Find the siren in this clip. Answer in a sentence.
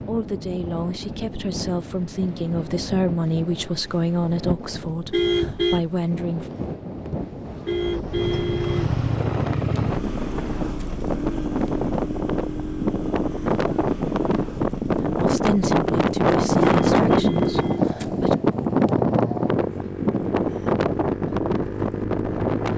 You can't hear the siren here.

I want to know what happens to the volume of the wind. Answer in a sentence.
The loudness of the wind goes up.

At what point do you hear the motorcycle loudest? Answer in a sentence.
The volume of the motorcycle peaks at 9 seconds.